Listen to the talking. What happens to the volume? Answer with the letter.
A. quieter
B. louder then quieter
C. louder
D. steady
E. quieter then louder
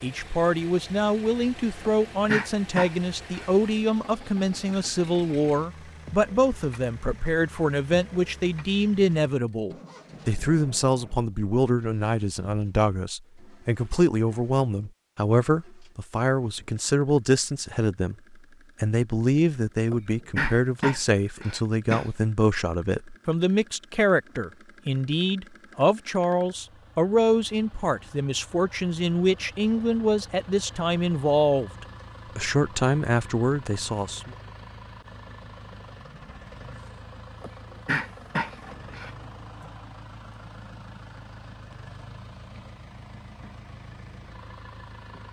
D.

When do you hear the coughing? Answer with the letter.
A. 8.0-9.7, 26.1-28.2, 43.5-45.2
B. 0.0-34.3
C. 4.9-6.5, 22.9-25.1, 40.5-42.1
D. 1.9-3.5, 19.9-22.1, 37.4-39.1
D.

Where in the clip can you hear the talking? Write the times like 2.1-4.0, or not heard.
0.0-34.3.